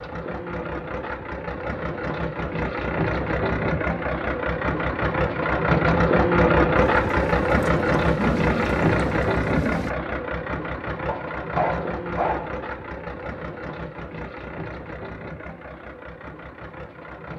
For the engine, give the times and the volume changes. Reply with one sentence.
You can hear the engine from 0.0 to 17.3 s, getting louder then quieter.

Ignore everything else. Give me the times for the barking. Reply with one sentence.
You can hear the barking from 11.1 to 12.6 s.